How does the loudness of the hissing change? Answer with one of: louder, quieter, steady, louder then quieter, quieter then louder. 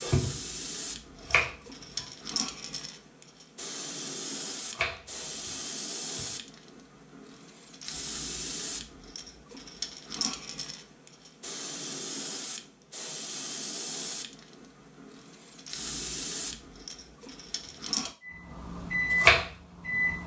steady.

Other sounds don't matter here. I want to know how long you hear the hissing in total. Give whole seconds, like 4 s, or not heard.
18 s.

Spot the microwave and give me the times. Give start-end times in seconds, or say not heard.
18.2-20.2.